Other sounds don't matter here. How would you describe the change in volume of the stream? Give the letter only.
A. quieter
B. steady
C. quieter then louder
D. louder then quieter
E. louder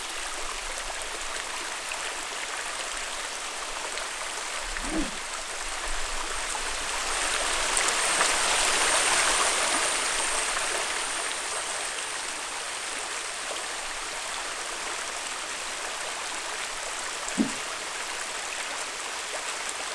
D.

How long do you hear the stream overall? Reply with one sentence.
You can hear the stream for 20 seconds altogether.